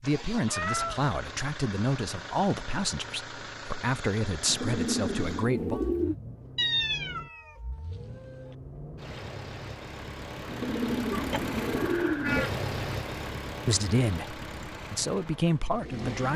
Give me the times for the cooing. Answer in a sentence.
You can hear the cooing from 4.5 to 6.2 s and from 10.4 to 12.4 s.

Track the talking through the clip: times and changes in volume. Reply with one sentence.
The talking can be heard from 0.0 to 5.8 s, at a steady volume; and briefly from 13.7 to 16.3 s.